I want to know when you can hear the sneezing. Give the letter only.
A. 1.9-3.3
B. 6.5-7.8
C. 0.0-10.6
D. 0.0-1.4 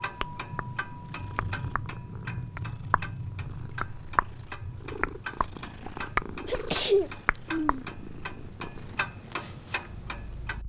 B.